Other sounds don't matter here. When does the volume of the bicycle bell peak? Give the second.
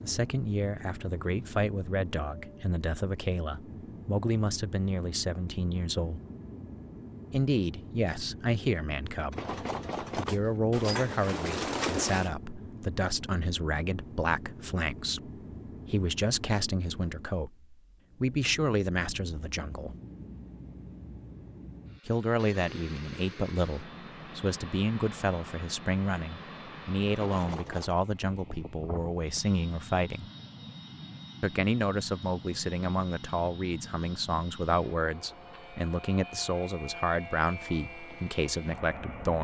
10 s.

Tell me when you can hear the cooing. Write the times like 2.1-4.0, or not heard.
10.7-12.3.